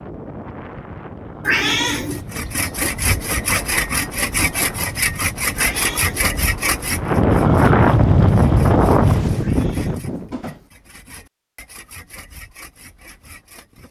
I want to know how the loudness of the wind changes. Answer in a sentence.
The volume of the wind goes up.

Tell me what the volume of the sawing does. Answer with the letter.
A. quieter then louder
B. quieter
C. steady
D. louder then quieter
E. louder
B.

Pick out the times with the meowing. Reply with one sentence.
You can hear the meowing from 1.4 to 2.2 s, from 5.5 to 6.2 s and from 9.4 to 10.7 s.